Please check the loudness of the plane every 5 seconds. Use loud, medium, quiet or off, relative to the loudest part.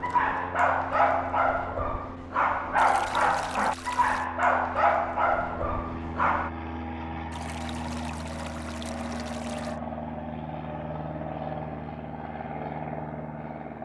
medium, loud, loud.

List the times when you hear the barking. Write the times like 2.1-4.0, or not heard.
0.0-6.5.